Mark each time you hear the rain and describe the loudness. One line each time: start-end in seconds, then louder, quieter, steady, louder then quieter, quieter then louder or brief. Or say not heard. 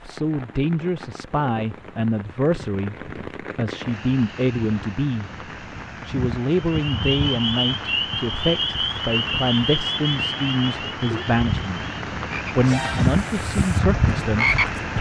0.0-14.9 louder.